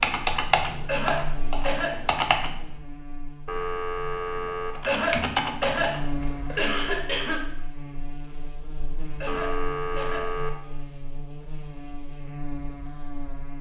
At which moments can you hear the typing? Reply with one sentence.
The typing can be heard from 0.0 to 2.5 s and from 4.8 to 6.8 s.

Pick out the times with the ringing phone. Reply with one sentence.
You can hear the ringing phone from 3.5 to 4.8 s and from 9.2 to 10.5 s.